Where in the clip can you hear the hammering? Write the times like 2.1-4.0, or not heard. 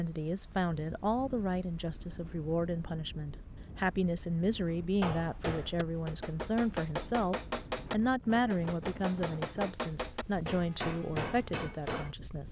4.7-12.2.